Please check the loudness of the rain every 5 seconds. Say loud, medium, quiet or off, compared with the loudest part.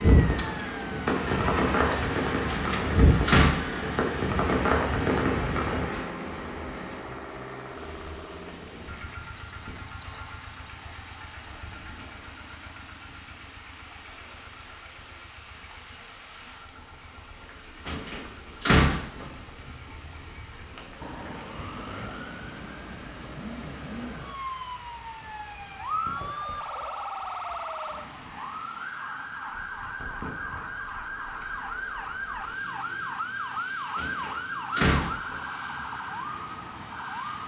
loud, medium, quiet, quiet, quiet, quiet, quiet, quiet.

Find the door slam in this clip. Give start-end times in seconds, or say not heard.
2.5-3.9, 17.9-19.3, 34.0-35.4.